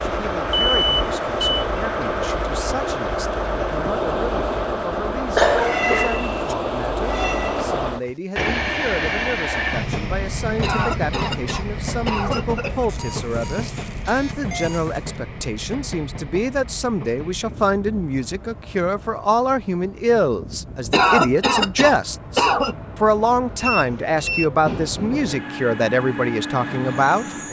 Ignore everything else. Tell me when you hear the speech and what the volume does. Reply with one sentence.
The speech can be heard from 0.0 to 27.4 s, getting louder.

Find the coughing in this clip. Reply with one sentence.
You can hear the coughing from 5.3 to 6.5 s, from 10.6 to 12.8 s and from 20.9 to 22.8 s.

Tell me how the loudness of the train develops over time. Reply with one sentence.
The loudness of the train goes down, then up.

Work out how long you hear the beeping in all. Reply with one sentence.
The beeping can be heard for 4 seconds in total.